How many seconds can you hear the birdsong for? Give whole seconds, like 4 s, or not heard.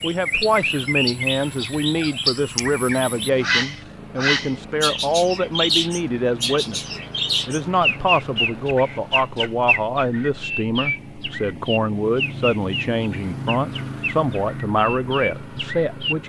16 s.